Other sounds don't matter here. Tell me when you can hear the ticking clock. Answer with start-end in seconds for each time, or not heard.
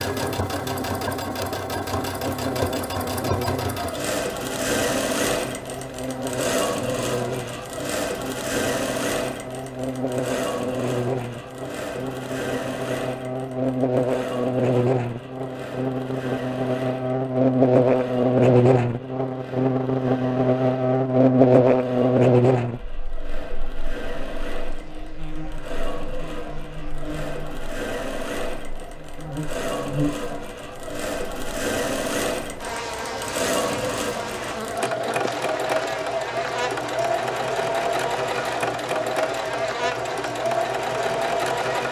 not heard.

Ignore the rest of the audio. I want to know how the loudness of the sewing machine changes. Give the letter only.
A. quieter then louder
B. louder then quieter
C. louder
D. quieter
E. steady
A.